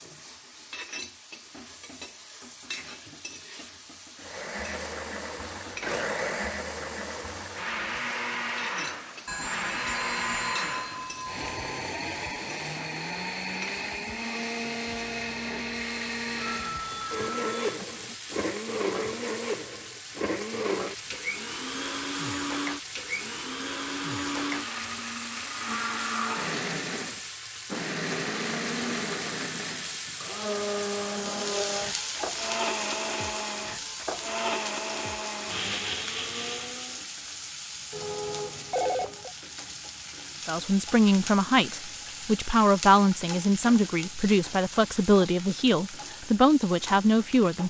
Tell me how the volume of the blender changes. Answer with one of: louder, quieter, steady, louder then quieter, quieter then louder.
steady.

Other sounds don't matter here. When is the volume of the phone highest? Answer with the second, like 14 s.
39 s.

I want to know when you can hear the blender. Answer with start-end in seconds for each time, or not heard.
4.2-37.0.